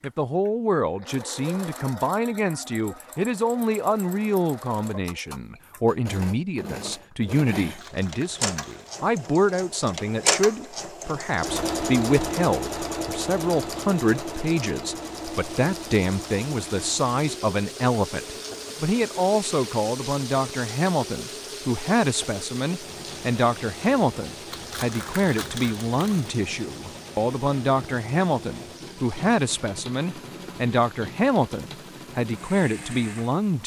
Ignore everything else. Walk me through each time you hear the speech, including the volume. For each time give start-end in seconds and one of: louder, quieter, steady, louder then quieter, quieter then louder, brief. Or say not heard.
0.0-33.6 steady.